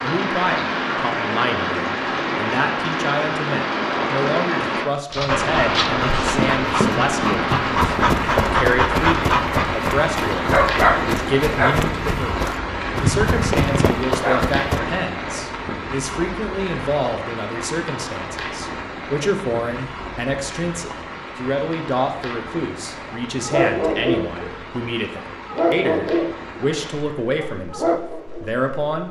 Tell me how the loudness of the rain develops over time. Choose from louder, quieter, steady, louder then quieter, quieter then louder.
quieter.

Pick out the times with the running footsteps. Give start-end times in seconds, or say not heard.
6.2-14.8.